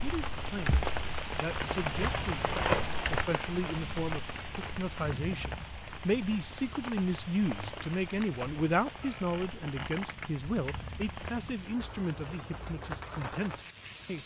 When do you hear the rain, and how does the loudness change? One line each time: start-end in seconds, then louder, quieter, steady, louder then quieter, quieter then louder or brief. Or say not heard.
0.0-14.2 quieter.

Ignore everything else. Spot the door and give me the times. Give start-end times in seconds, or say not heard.
not heard.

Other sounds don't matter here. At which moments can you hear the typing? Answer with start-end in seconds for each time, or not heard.
0.0-3.2.